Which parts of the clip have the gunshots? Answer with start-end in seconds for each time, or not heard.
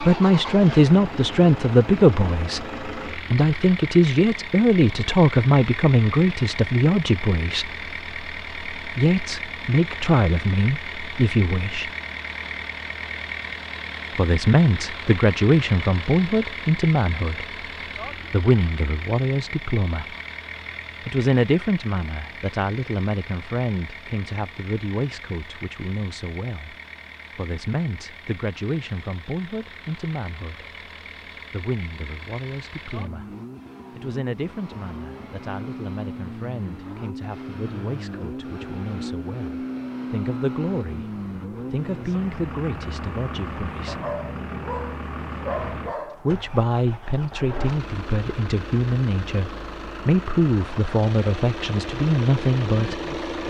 not heard.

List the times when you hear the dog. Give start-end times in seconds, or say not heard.
43.9-46.2.